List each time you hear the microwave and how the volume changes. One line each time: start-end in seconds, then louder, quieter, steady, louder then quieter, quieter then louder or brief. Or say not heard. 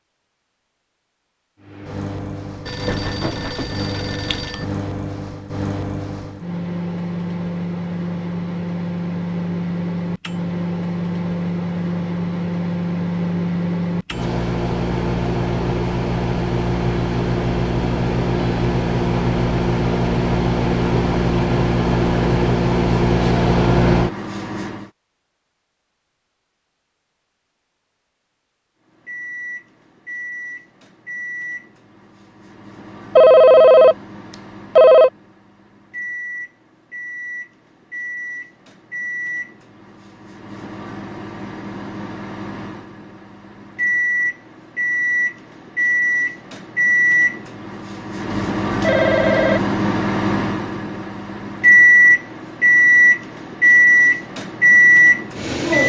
1.6-24.9 louder
28.9-55.8 louder.